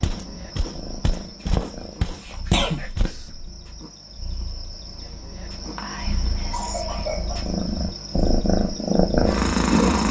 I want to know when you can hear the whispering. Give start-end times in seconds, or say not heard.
2.8-3.5, 5.8-6.9.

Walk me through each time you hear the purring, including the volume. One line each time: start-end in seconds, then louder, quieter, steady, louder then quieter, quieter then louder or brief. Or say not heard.
0.0-10.0 quieter then louder.